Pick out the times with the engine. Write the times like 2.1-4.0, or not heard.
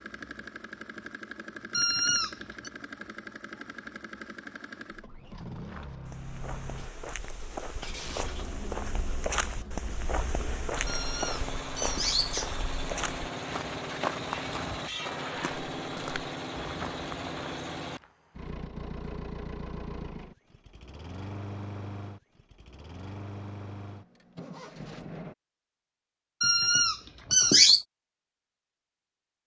0.0-25.4.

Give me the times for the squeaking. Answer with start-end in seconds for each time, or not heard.
1.7-2.7, 10.8-12.6, 26.4-27.9.